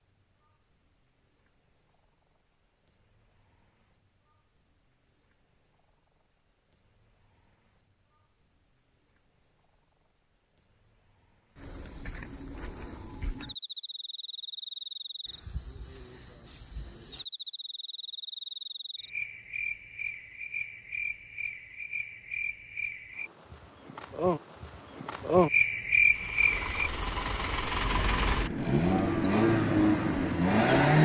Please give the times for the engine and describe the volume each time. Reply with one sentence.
The engine can be heard from 26.1 to 31.0 s, getting louder.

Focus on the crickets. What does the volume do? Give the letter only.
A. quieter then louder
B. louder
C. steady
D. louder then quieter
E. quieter
B.